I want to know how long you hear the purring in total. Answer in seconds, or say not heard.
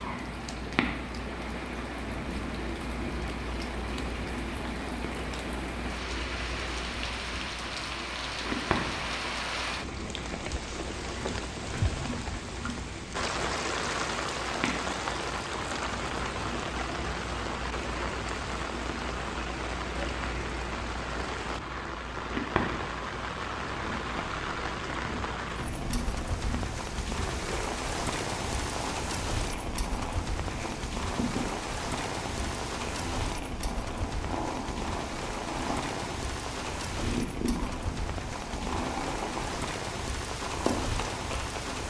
42 s.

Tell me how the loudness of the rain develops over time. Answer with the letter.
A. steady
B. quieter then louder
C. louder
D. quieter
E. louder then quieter
A.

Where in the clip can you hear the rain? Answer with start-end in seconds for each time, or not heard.
0.0-41.8.